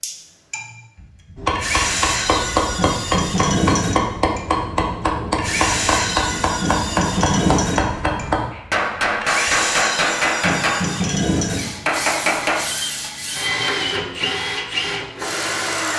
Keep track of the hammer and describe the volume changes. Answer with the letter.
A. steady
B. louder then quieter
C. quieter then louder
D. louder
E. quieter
A.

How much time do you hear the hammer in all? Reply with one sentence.
You can hear the hammer for 11 seconds altogether.